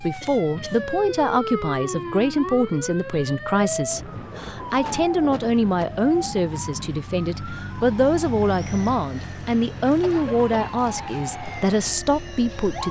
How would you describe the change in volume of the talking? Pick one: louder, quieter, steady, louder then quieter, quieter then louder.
steady.